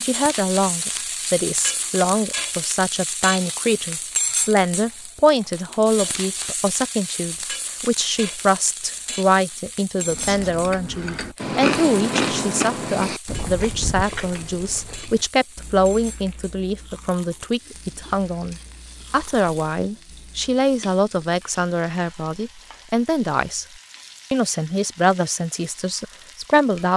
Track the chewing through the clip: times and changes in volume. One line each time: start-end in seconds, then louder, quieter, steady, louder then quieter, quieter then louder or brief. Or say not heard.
9.9-20.6 quieter.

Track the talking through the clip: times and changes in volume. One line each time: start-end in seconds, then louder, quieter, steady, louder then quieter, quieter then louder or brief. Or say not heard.
0.0-23.6 steady
24.3-26.9 brief.